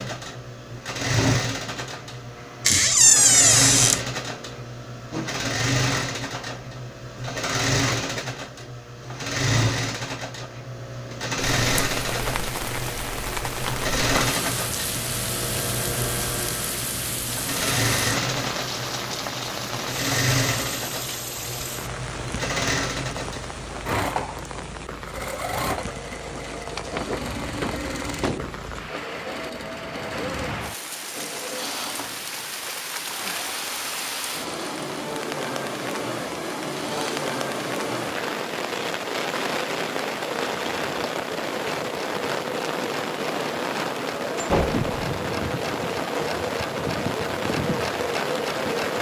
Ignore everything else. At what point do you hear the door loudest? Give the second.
3 s.